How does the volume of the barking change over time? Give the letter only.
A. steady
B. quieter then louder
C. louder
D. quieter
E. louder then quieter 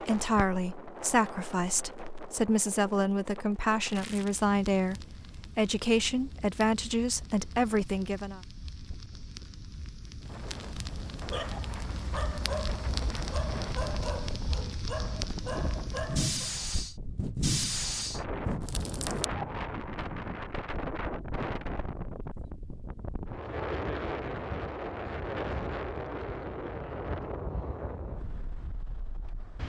A.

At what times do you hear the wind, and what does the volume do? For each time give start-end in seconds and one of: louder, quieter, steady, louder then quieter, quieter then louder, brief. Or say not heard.
0.0-29.6 louder.